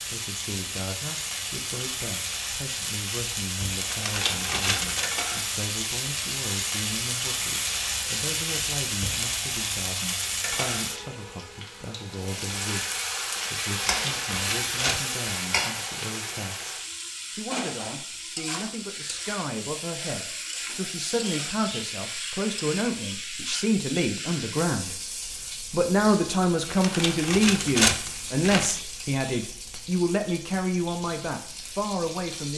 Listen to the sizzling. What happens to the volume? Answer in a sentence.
The volume of the sizzling goes down.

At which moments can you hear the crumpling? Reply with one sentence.
The crumpling can be heard from 3.9 to 5.1 s, from 13.8 to 15.0 s and from 26.7 to 28.8 s.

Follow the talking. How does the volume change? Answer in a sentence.
The volume of the talking goes up.